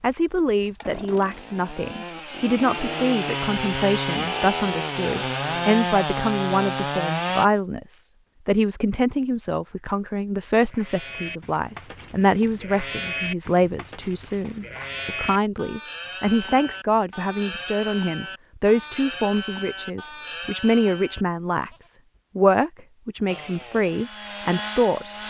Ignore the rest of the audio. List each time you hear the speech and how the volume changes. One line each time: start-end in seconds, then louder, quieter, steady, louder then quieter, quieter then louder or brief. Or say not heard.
0.0-25.1 steady.